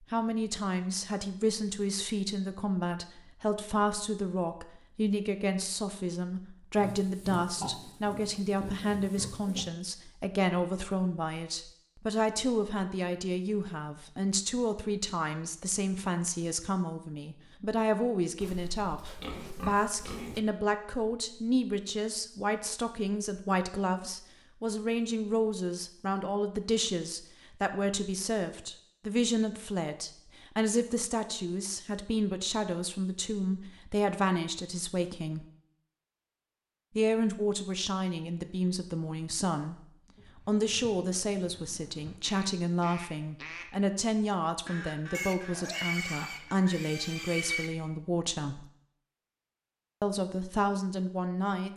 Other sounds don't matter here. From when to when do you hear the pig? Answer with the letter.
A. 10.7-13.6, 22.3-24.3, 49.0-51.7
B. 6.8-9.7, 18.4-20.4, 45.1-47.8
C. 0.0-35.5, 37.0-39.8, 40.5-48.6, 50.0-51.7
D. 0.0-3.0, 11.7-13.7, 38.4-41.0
B.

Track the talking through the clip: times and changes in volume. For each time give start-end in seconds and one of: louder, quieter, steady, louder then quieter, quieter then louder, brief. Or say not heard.
0.0-35.5 steady
37.0-39.8 brief
40.5-48.6 steady
50.0-51.7 brief.